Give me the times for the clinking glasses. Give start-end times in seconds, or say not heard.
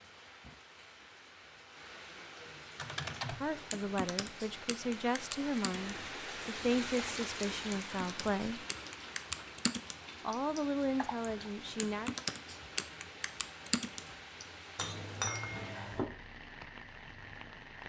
14.8-16.1.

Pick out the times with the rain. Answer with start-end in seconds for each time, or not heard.
0.0-17.8.